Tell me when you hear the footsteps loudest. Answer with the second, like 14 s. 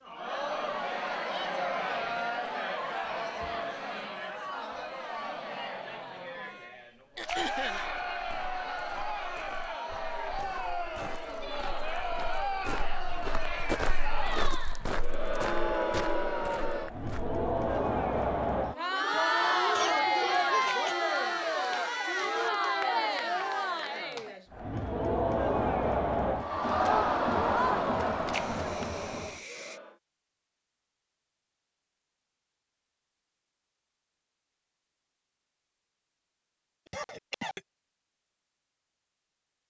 14 s.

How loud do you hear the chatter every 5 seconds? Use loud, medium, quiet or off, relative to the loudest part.
medium, medium, medium, loud, loud, loud, off, off.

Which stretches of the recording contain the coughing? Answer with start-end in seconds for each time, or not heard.
7.2-7.8, 19.8-20.9, 36.9-37.6.